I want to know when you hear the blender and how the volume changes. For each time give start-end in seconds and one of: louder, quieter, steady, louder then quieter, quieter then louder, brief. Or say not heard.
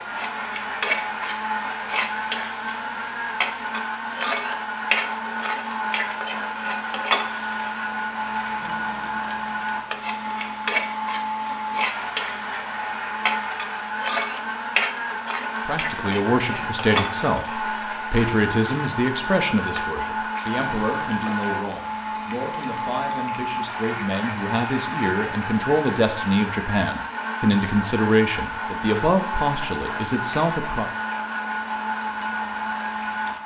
0.0-33.4 steady.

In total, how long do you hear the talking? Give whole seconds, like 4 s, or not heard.
15 s.